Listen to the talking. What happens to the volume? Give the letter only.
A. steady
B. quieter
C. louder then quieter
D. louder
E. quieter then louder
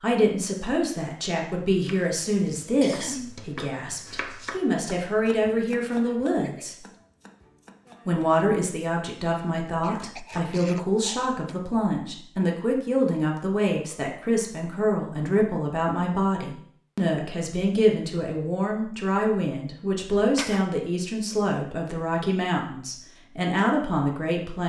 A.